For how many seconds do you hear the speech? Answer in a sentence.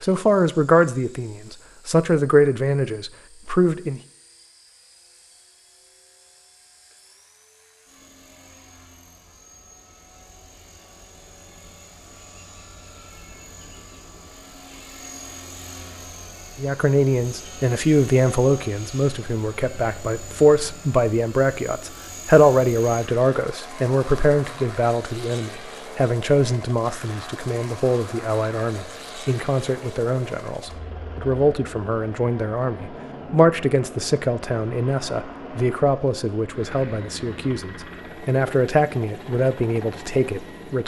The speech can be heard for 28 seconds in total.